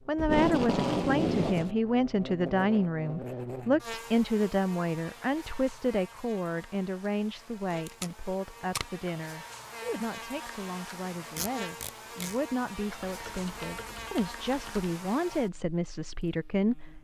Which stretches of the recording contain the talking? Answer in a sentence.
You can hear the talking from 0.1 to 16.9 s.